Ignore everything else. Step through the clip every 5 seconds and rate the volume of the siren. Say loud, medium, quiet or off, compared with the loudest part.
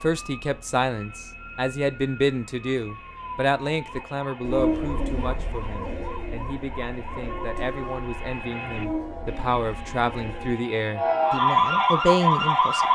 quiet, quiet, loud.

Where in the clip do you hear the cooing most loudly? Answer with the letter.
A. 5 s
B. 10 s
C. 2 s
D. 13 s
A.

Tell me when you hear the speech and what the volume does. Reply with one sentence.
The speech can be heard from 0.0 to 12.9 s, getting quieter then louder.